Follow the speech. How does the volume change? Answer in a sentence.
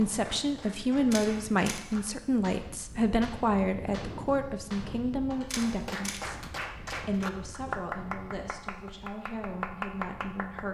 The loudness of the speech goes down.